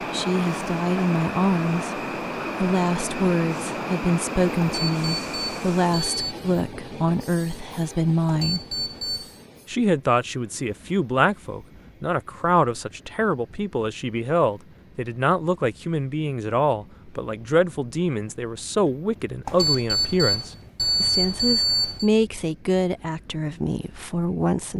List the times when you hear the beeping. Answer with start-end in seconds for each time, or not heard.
4.6-6.3, 8.2-9.4, 19.4-22.1.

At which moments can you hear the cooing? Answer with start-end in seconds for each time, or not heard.
not heard.